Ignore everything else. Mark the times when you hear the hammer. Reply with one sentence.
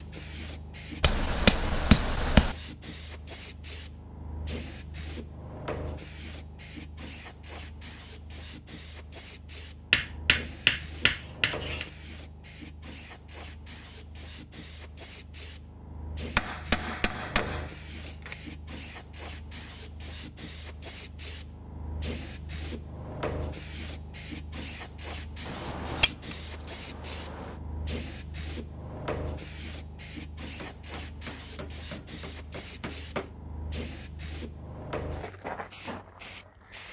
You can hear the hammer from 1.0 to 2.5 s, from 9.9 to 11.8 s, from 16.4 to 18.4 s, from 25.4 to 27.6 s and from 30.6 to 33.3 s.